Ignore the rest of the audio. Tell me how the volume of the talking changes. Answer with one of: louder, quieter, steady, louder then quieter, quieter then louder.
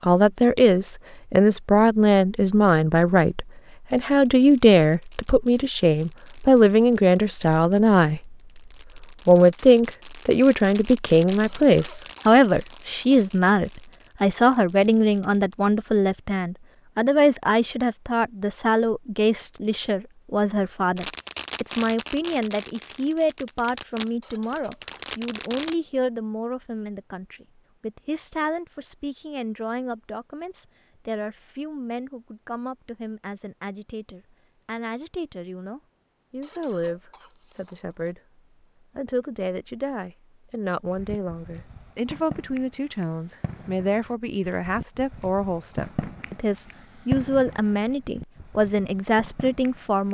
quieter then louder.